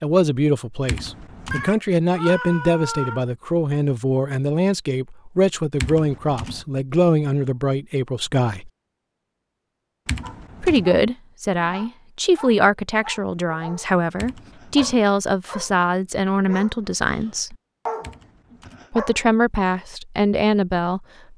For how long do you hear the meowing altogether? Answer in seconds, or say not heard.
2 s.